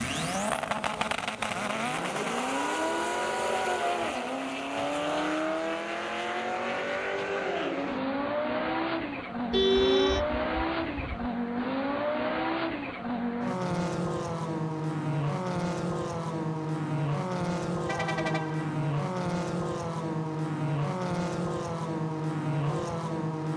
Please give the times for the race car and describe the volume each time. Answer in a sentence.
The race car can be heard from 0.0 to 23.5 s, at a steady volume.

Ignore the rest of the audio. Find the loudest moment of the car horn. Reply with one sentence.
The volume of the car horn peaks at 10 seconds.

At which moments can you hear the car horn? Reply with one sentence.
You can hear the car horn from 2.5 to 4.2 s, from 9.5 to 11.3 s and from 17.9 to 18.7 s.